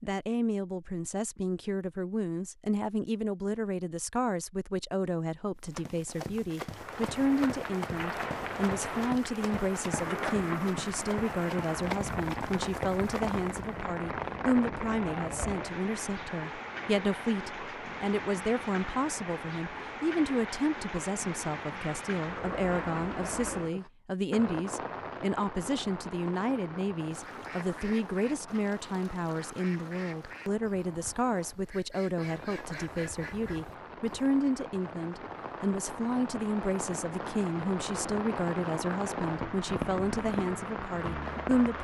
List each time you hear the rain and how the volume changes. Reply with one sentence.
You can hear the rain from 6.6 to 41.7 s, getting quieter then louder.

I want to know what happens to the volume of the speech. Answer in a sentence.
The volume of the speech stays about the same.